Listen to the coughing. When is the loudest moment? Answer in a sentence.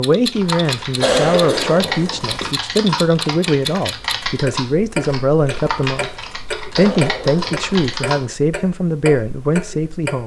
The volume of the coughing peaks at 1 second.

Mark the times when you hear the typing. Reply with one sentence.
The typing can be heard from 0.3 to 8.2 s.